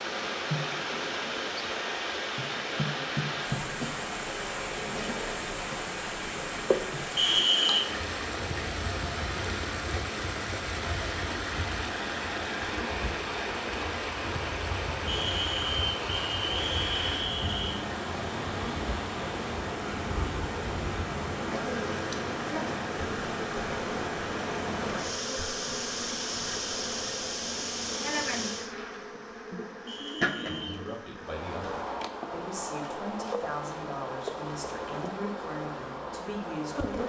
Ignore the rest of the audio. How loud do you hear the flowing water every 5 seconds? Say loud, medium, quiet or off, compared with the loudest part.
loud, loud, loud, loud, loud, loud, off, off.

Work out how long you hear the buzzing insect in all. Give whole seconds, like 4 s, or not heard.
37 s.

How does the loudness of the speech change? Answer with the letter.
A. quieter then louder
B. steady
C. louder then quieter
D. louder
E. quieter
B.